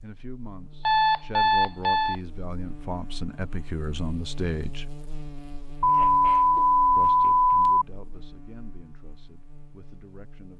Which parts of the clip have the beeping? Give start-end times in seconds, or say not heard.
0.8-2.1, 5.8-7.8.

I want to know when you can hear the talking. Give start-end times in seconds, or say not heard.
0.0-5.0, 7.0-10.5.